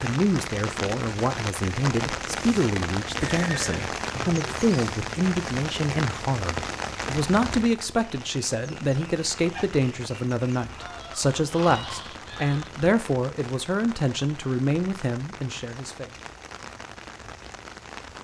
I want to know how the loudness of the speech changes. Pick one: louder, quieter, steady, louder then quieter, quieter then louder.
steady.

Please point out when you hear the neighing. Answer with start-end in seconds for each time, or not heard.
3.2-3.9.